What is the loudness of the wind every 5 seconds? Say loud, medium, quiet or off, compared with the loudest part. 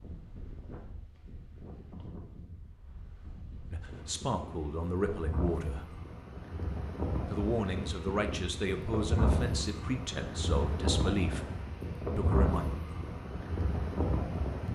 quiet, loud, loud.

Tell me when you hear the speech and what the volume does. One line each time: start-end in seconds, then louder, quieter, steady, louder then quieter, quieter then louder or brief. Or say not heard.
3.7-6.0 brief
7.3-11.5 steady
12.2-12.7 brief.